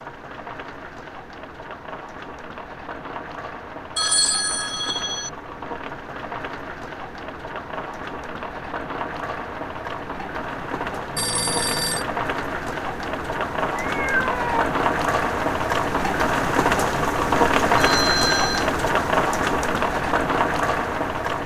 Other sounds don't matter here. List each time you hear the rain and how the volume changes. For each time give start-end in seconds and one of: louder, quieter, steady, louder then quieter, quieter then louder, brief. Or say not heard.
0.0-21.4 louder.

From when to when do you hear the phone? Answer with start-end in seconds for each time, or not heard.
4.0-5.3, 11.2-12.1, 17.8-18.7.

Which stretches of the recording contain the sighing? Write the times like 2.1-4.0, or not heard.
not heard.